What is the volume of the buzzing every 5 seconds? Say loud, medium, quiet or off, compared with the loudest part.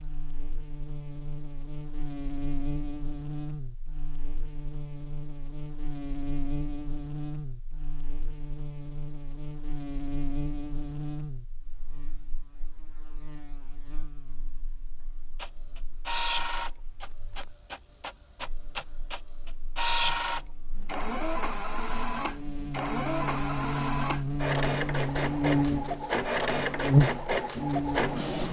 quiet, quiet, quiet, quiet, medium, loud.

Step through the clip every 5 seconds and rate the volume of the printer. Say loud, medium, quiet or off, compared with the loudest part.
off, off, off, loud, loud, loud.